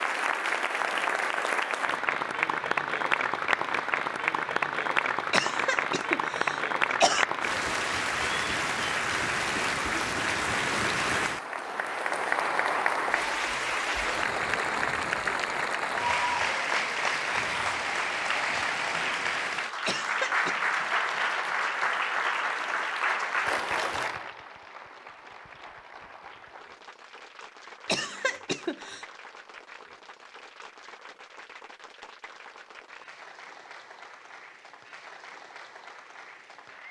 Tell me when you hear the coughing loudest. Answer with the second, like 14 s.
7 s.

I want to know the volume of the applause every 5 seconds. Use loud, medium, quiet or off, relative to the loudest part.
loud, loud, loud, loud, loud, quiet, quiet, quiet.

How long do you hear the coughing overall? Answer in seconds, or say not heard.
4 s.